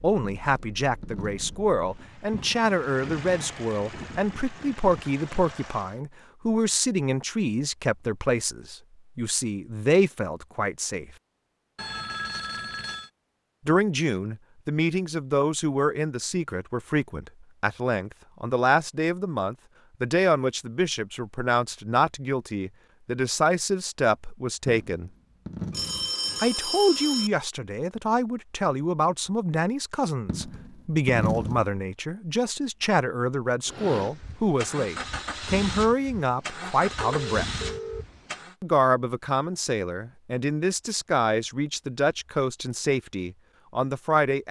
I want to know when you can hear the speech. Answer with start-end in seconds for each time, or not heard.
0.0-11.1, 13.7-25.1, 26.4-37.5, 38.6-44.4.